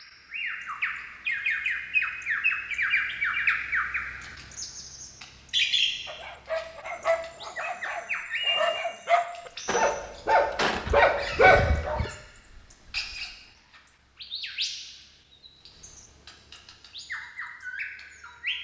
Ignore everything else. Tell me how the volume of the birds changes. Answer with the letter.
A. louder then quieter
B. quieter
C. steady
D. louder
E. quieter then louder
B.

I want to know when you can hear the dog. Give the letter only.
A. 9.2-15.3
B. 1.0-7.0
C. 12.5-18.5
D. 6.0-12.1
D.